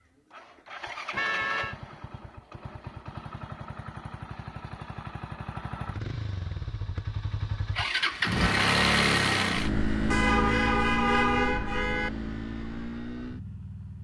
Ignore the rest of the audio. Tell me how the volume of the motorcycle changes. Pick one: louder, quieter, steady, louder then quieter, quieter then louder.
louder then quieter.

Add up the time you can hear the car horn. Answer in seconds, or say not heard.
3 s.